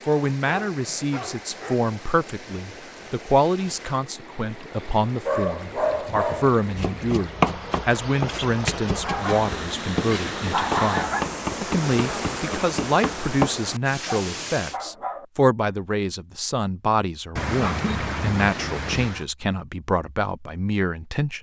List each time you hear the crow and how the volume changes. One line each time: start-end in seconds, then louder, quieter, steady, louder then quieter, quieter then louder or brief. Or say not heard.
not heard.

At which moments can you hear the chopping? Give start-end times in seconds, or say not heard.
6.8-13.5.